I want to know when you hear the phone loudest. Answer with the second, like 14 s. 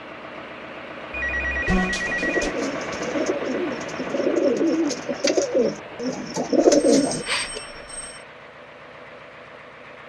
2 s.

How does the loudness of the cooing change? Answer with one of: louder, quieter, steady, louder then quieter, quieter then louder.
louder.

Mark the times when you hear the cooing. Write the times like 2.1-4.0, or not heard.
1.6-7.2.